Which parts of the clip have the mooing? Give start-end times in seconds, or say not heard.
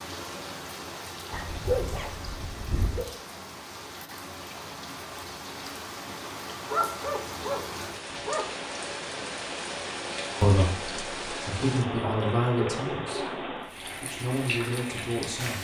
not heard.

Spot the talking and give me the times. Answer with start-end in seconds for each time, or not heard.
10.4-13.4, 14.0-15.5.